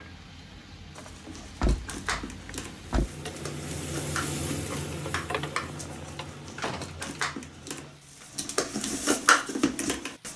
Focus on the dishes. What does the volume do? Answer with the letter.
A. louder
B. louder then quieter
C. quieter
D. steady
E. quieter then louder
A.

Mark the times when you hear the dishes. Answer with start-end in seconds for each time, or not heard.
0.9-10.3.